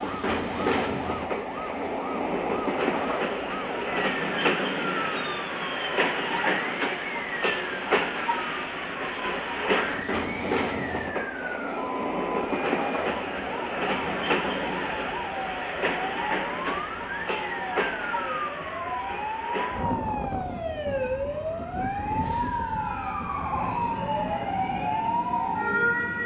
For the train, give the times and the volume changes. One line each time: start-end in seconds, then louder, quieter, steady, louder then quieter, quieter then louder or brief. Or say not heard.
0.0-26.2 quieter.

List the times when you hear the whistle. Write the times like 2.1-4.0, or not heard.
not heard.